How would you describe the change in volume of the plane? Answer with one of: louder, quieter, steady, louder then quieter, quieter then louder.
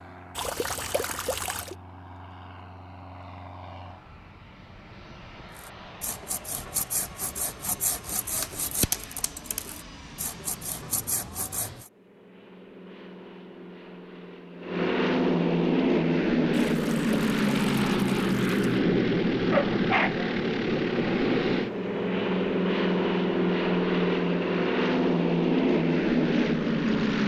louder.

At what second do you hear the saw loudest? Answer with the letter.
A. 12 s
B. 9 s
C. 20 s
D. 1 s
B.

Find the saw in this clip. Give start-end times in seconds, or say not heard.
5.5-11.9.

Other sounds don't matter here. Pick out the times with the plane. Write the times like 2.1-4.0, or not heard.
0.0-27.2.